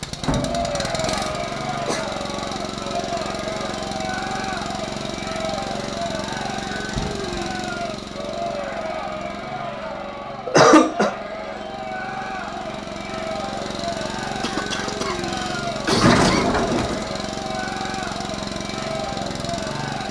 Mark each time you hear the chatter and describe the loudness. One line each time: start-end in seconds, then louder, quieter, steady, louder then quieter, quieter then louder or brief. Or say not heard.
0.1-20.0 steady.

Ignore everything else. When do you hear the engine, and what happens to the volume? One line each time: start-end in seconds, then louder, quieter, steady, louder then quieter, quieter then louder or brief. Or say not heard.
0.0-20.0 quieter then louder.